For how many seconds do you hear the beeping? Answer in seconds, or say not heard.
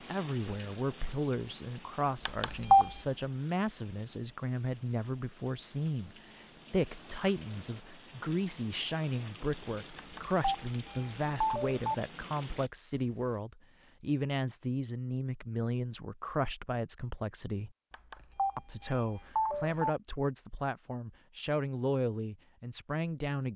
5 s.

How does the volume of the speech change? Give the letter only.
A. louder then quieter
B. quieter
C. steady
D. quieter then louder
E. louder
C.